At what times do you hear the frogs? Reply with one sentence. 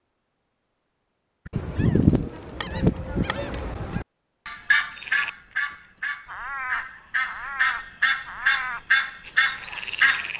The frogs can be heard from 4.9 to 10.3 s.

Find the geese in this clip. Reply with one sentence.
The geese can be heard from 1.4 to 10.3 s.